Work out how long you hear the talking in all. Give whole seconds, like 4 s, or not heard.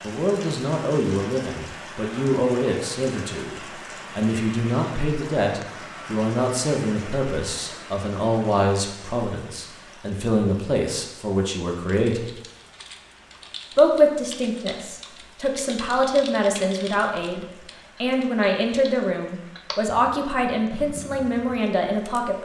21 s.